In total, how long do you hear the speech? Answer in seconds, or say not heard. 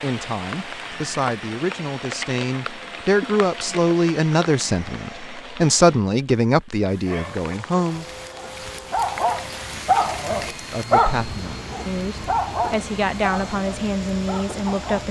12 s.